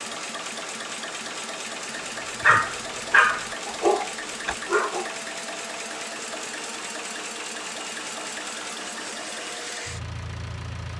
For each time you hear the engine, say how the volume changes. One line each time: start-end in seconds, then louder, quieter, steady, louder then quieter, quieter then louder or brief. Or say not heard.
0.0-10.9 steady.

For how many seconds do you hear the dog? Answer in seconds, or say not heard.
3 s.